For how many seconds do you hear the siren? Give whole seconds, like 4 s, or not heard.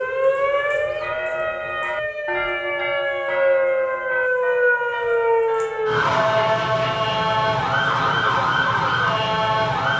10 s.